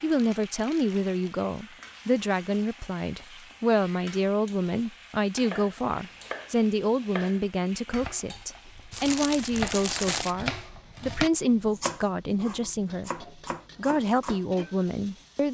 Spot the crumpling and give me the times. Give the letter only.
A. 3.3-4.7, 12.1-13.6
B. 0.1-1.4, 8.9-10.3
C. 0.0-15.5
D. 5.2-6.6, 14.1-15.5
B.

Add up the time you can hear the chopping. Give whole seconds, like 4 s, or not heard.
9 s.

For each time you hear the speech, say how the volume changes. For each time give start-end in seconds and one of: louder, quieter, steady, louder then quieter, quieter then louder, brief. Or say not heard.
0.0-15.5 steady.